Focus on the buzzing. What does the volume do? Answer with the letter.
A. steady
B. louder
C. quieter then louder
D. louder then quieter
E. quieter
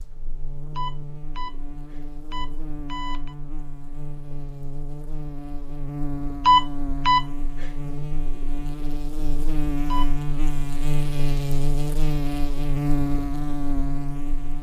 B.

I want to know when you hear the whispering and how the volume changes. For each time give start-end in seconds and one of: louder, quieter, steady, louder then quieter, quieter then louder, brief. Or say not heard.
not heard.